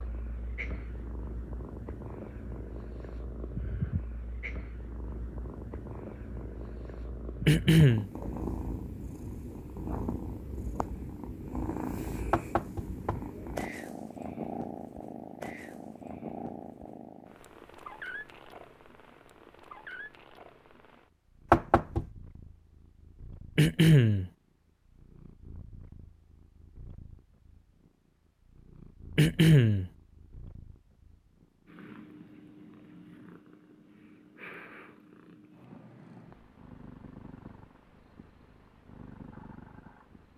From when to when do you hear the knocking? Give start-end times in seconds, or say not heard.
12.3-13.2, 21.5-22.1.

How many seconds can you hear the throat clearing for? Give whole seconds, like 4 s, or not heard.
2 s.